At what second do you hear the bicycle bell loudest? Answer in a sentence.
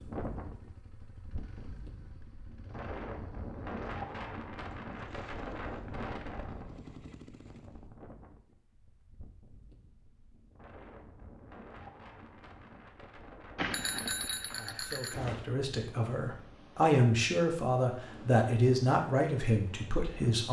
The loudest moment of the bicycle bell is at 14 seconds.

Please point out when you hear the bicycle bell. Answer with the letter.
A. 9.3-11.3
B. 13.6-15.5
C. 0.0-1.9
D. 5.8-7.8
B.